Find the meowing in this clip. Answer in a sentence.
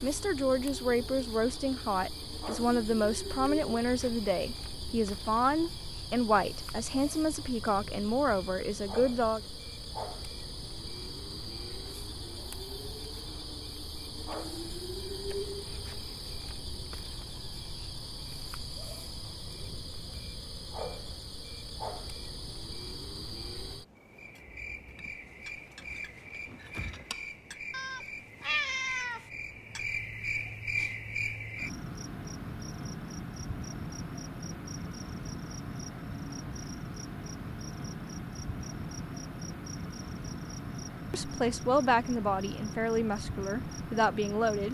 You can hear the meowing from 27.7 to 29.6 s.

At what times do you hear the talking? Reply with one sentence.
You can hear the talking from 0.0 to 9.4 s and from 41.1 to 44.6 s.